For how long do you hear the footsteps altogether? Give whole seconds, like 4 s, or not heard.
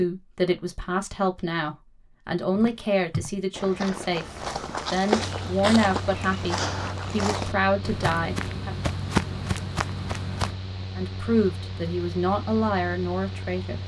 8 s.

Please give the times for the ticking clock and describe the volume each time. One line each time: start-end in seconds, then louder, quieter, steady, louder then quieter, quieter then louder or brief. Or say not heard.
not heard.